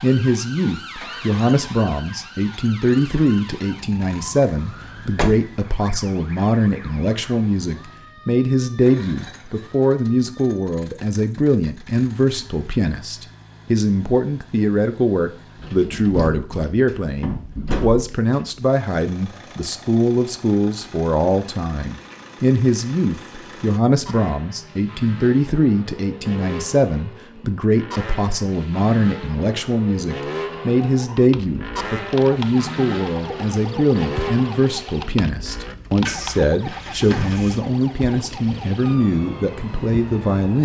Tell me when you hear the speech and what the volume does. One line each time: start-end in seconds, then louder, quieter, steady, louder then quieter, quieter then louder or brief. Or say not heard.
0.0-40.5 steady.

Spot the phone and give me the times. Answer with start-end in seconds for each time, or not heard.
not heard.